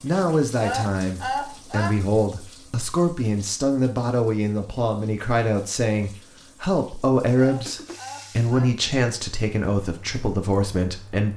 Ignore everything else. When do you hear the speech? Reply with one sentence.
You can hear the speech from 0.0 to 11.3 s.